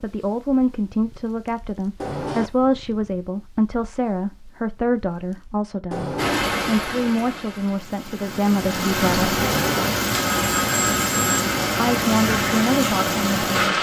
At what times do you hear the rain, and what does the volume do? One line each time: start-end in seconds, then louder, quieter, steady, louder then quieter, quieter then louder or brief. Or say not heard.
6.2-13.7 louder.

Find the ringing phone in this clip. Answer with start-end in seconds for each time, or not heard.
1.9-2.5, 5.9-6.5, 9.4-11.4.